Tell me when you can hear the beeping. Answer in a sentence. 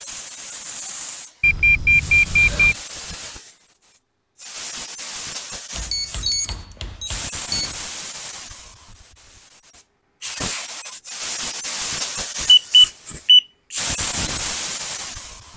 The beeping can be heard from 1.4 to 2.8 s, from 5.9 to 7.7 s and from 12.4 to 13.4 s.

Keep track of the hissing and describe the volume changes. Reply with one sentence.
The volume of the hissing goes up.